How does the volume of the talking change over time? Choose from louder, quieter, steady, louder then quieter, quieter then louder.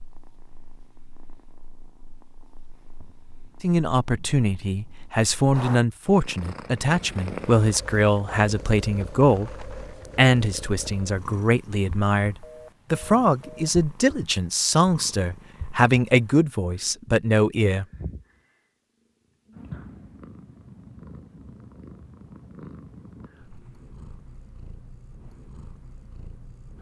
steady.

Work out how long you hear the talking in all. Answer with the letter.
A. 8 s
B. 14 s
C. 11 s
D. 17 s
B.